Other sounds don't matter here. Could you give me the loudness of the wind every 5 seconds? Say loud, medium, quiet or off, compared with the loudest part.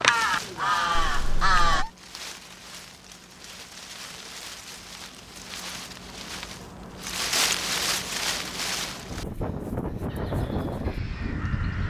medium, loud, loud.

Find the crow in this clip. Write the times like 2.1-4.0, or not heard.
0.0-1.9, 10.1-11.8.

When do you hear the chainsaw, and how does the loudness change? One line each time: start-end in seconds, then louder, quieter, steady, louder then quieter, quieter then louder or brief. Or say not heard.
not heard.